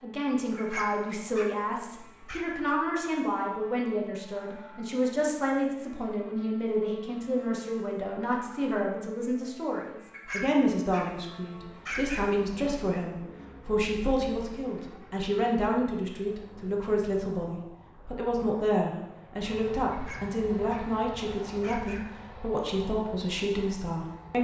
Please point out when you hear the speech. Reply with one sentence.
You can hear the speech from 0.0 to 24.3 s.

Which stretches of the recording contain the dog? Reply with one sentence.
The dog can be heard from 0.6 to 2.4 s, from 10.1 to 11.1 s, from 11.8 to 12.3 s, from 19.9 to 20.9 s and from 21.6 to 22.1 s.